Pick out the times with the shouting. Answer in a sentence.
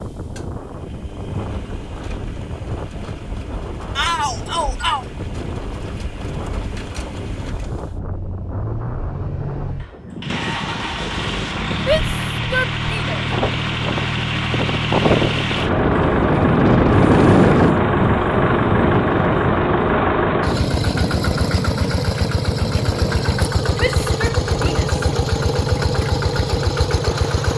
You can hear the shouting from 4.0 to 5.0 s, from 11.8 to 13.2 s and from 23.8 to 24.9 s.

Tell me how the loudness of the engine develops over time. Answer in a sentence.
The loudness of the engine goes up.